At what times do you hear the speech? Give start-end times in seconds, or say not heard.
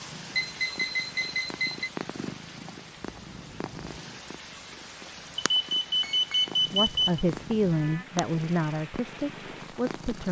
6.7-10.2.